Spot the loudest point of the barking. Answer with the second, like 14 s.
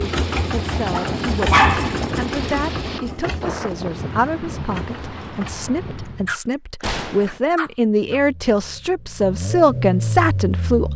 2 s.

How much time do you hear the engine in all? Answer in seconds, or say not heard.
9 s.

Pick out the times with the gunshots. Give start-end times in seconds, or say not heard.
6.8-7.4.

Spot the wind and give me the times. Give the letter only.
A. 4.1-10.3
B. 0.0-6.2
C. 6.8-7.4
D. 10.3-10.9
B.